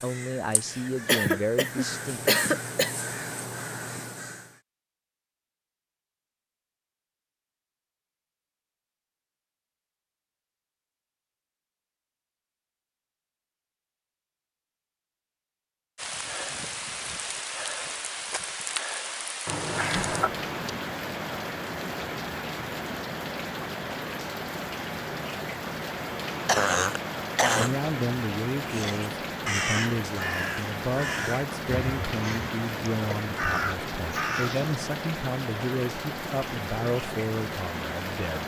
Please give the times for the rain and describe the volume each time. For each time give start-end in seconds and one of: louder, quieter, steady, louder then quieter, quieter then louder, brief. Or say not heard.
15.9-38.4 steady.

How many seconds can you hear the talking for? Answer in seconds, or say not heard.
13 s.